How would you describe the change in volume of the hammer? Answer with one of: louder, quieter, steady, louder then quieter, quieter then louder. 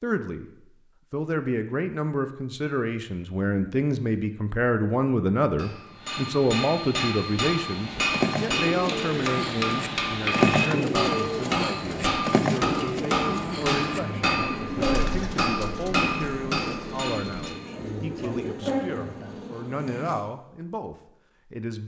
steady.